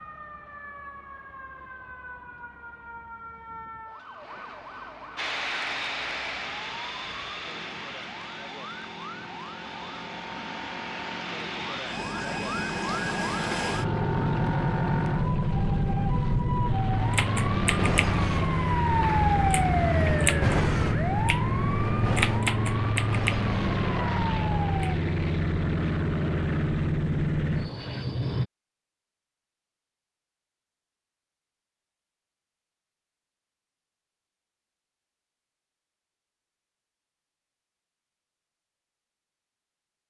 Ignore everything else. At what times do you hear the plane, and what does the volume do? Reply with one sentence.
The plane can be heard from 5.2 to 28.4 s, getting louder.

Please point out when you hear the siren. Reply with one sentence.
The siren can be heard from 0.0 to 24.9 s.